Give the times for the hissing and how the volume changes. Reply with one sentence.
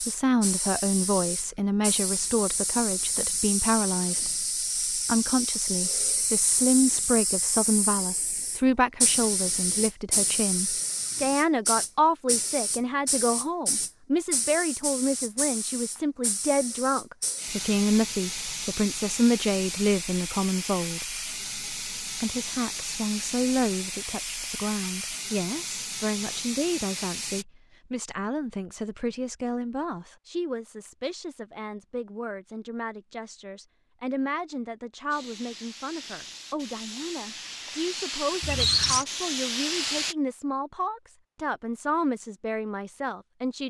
The hissing can be heard from 0.0 to 27.4 s, at a steady volume; and from 35.1 to 40.1 s, getting louder.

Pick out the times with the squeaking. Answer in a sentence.
The squeaking can be heard from 38.4 to 39.0 s.